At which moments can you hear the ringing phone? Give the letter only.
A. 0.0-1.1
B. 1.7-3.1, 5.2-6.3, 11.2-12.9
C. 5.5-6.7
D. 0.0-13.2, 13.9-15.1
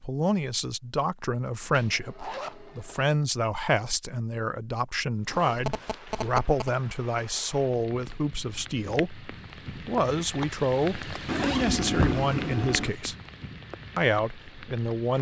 C.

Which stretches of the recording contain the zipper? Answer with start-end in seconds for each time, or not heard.
1.7-3.1, 5.2-6.3, 11.2-12.9.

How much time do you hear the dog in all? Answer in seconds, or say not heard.
not heard.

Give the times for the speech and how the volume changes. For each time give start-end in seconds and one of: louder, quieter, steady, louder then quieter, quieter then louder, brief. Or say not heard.
0.0-13.2 steady
13.9-15.1 brief.